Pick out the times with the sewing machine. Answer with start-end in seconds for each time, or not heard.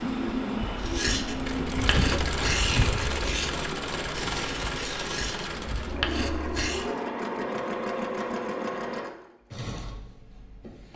0.0-10.9.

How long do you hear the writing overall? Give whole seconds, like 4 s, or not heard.
6 s.